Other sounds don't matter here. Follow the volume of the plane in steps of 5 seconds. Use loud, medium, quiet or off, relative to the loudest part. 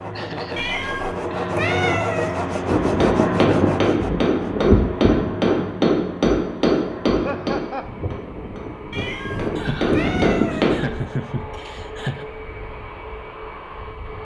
loud, medium, medium.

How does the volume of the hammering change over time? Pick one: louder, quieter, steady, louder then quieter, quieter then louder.
quieter then louder.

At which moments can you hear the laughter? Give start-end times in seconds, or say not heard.
0.1-1.6, 7.1-7.9, 9.6-12.2.